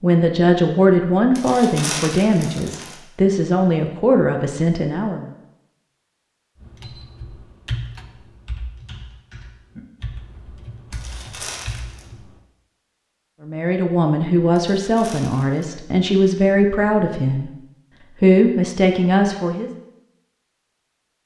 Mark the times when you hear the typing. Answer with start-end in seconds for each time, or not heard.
6.6-12.3.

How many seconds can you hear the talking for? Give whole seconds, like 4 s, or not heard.
11 s.